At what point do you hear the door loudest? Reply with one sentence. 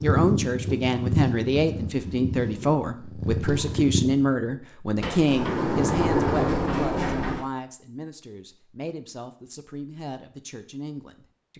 The loudest moment of the door is at 6 seconds.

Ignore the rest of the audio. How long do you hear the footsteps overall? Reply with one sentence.
You can't hear the footsteps here.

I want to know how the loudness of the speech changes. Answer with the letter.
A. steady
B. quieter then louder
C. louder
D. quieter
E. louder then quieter
D.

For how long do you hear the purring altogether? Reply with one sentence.
The purring can be heard for 4 seconds in total.